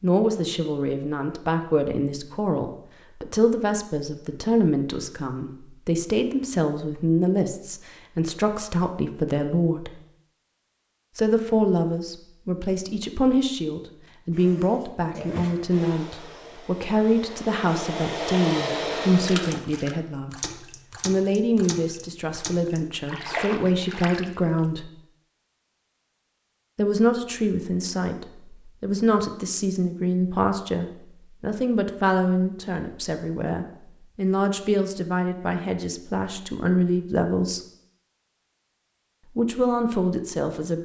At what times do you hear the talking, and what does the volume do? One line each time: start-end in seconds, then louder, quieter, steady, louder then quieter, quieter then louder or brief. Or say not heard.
0.0-9.9 steady
11.2-24.9 steady
26.8-37.6 steady
39.4-40.8 brief.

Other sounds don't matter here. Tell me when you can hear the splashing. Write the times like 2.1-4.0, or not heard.
19.2-24.2.